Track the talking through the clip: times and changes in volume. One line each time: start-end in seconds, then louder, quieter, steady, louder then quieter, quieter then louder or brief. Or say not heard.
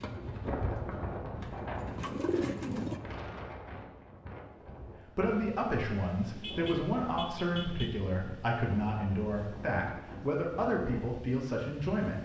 5.0-12.1 steady.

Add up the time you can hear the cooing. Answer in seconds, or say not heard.
3 s.